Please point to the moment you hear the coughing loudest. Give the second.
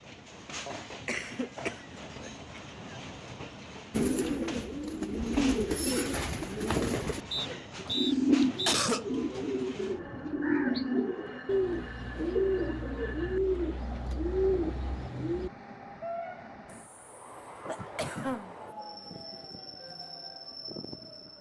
9 s.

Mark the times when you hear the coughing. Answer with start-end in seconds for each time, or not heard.
0.7-2.6, 7.8-9.1, 16.6-18.6.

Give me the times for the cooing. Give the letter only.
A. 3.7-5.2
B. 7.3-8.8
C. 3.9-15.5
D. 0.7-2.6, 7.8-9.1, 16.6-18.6
C.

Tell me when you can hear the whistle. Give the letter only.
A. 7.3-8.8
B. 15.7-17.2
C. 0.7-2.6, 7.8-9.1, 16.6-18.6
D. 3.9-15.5
A.